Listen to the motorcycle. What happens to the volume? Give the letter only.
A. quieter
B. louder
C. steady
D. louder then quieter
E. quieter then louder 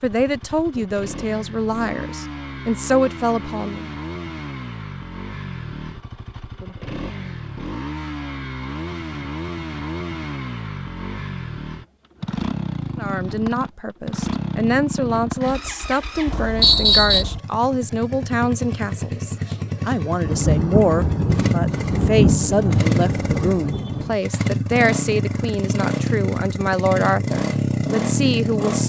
B.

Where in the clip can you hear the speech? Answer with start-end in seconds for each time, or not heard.
0.0-3.9, 12.9-28.8.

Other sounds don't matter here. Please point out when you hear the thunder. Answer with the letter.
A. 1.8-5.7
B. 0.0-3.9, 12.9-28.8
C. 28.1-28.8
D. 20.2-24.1
D.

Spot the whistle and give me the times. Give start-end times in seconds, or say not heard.
16.6-17.2.